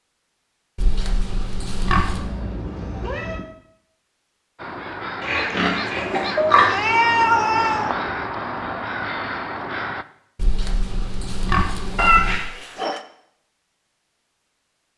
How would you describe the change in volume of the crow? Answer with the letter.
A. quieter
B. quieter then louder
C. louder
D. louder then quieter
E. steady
E.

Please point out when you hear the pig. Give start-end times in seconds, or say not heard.
0.8-2.3, 5.2-6.8, 10.3-12.4.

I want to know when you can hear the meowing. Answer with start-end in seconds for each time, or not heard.
2.0-3.5, 6.3-7.9, 11.9-13.0.